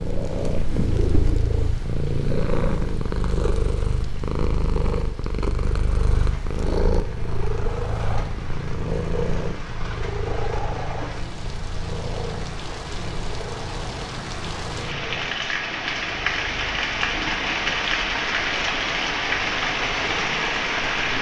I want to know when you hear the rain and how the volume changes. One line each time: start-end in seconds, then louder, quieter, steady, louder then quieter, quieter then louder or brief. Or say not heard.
0.0-21.1 louder.